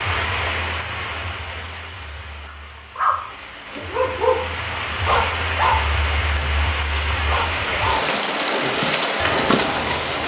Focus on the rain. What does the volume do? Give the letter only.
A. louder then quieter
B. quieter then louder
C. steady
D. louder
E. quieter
B.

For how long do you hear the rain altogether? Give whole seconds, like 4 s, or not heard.
10 s.